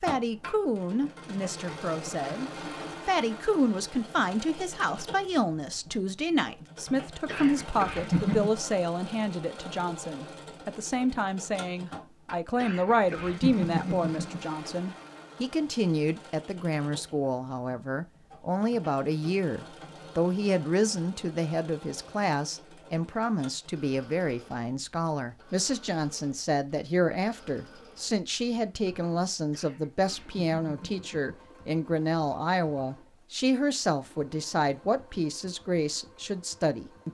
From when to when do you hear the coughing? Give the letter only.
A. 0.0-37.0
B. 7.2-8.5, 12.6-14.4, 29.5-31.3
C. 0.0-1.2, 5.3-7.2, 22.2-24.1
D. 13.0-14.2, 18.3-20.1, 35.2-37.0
B.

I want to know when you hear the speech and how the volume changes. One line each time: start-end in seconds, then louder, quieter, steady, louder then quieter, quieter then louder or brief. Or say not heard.
0.0-37.0 steady.